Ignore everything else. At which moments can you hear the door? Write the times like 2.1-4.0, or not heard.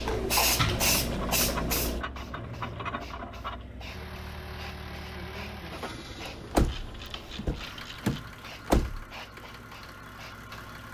0.0-0.9, 6.5-9.1.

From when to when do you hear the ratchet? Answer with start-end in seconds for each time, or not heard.
1.0-3.6, 6.5-8.3.